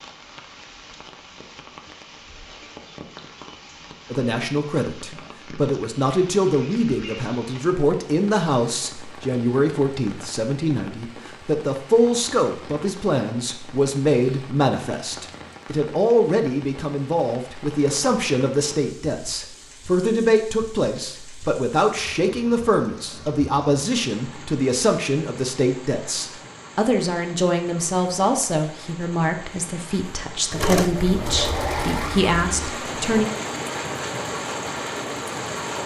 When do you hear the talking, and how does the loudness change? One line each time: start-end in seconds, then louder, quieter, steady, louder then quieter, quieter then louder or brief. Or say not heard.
4.1-33.2 steady.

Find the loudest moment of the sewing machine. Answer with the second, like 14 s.
31 s.